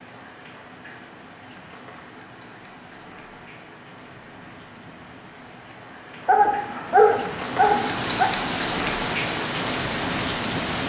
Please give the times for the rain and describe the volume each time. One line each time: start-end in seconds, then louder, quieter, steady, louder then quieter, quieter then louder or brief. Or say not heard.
0.0-10.8 louder.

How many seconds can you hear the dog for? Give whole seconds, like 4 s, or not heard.
2 s.